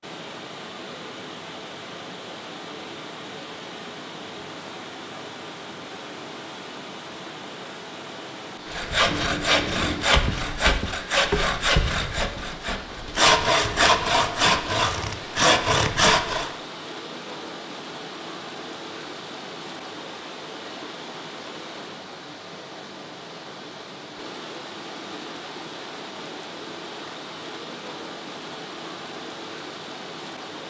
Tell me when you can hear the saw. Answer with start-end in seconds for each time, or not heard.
8.7-16.5.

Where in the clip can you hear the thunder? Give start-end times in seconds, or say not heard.
8.7-10.6.